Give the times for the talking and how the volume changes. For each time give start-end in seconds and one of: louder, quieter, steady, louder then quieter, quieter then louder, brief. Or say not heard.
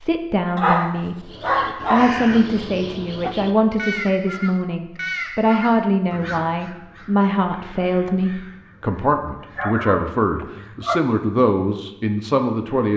0.0-12.9 steady.